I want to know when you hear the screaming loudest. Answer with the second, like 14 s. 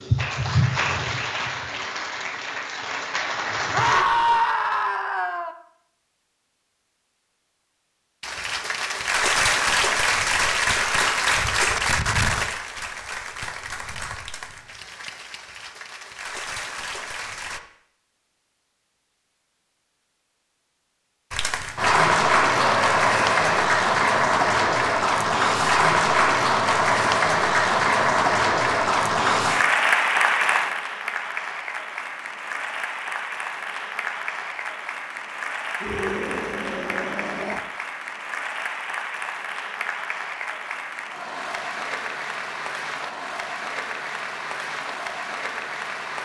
4 s.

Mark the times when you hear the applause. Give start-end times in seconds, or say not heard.
0.0-4.0, 8.2-17.6, 21.3-46.1.